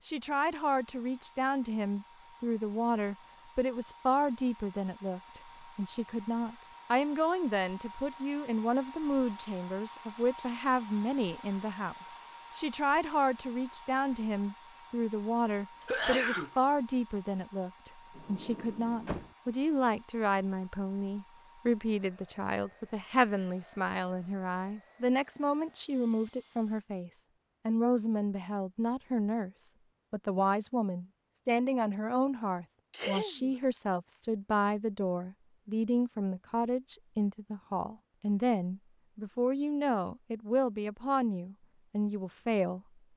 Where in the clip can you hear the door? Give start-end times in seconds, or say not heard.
18.1-19.4.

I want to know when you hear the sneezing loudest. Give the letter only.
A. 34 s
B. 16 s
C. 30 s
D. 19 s
B.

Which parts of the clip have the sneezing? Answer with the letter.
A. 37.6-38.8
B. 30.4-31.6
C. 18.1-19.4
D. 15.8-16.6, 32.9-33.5
D.